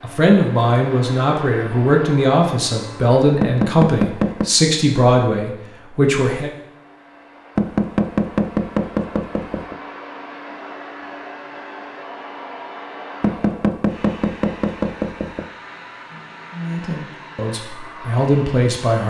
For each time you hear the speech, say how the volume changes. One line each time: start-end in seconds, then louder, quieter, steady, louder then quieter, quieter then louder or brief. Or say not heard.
0.0-6.5 steady
16.5-19.0 brief.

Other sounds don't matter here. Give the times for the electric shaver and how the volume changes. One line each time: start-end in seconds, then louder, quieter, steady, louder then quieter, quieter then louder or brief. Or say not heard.
not heard.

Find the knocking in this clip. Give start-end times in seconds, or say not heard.
3.4-4.5, 7.5-9.8, 13.2-15.4.